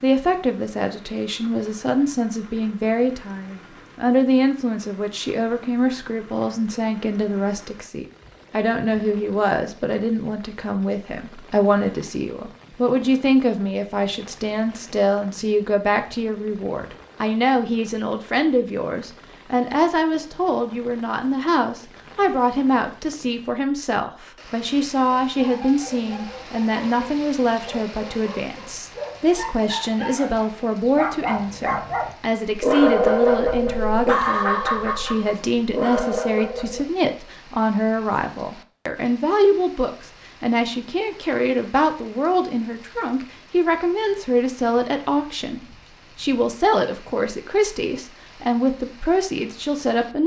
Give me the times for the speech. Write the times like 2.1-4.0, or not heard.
0.0-50.2.